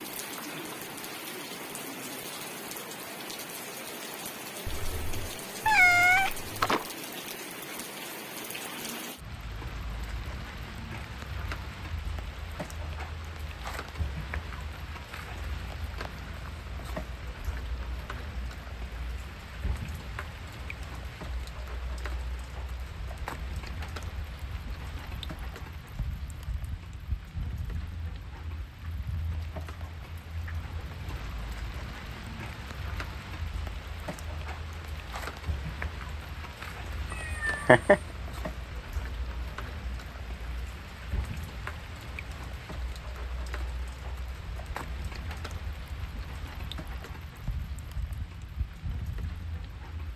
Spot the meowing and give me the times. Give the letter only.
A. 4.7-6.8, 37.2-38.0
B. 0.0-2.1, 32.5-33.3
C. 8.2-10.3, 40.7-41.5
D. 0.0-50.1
A.